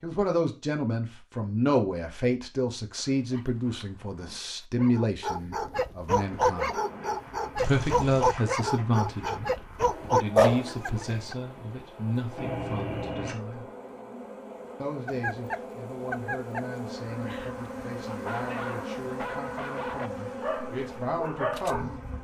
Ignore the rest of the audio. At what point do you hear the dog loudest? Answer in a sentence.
The volume of the dog peaks at 10 seconds.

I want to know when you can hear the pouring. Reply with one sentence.
The pouring can be heard from 7.5 to 8.4 s and from 12.3 to 13.3 s.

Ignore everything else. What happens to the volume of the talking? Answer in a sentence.
The volume of the talking goes down.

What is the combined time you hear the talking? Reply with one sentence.
The talking can be heard for 20 seconds in total.